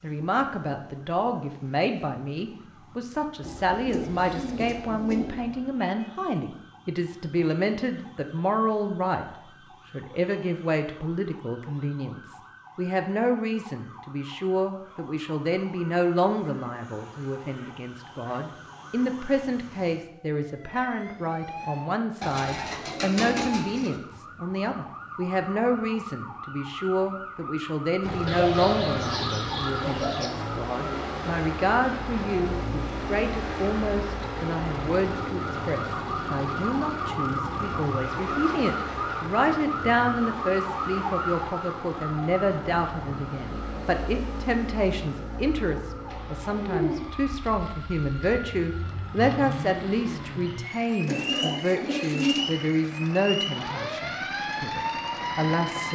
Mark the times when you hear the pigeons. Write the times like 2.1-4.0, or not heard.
3.4-5.6, 22.2-23.9, 28.2-30.3, 51.0-52.5.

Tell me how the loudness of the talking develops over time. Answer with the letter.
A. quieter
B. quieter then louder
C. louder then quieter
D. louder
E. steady
E.